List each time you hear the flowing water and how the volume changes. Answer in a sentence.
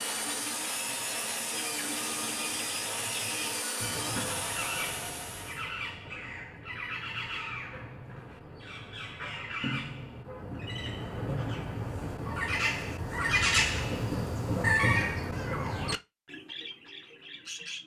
The flowing water can't be heard in this clip.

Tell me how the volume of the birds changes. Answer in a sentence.
The loudness of the birds goes up.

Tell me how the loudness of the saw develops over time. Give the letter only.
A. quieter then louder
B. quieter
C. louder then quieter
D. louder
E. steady
E.